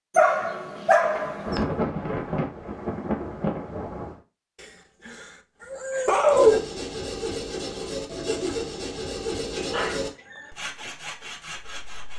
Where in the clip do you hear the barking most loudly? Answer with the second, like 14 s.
6 s.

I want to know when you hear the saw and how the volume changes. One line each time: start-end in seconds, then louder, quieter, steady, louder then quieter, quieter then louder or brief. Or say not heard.
6.3-12.1 quieter.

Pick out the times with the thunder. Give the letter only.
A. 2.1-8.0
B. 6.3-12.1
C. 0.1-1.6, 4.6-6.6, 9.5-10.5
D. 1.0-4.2
D.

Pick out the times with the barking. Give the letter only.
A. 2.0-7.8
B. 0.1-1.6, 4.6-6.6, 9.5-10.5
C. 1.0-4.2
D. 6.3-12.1
B.